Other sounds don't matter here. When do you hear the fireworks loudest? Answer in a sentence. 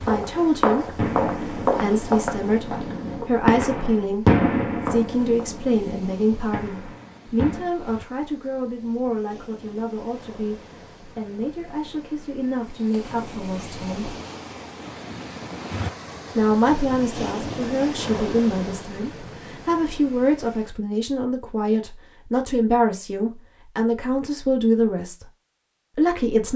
The volume of the fireworks peaks at 4 seconds.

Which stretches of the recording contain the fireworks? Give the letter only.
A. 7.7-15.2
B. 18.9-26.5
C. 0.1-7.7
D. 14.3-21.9
C.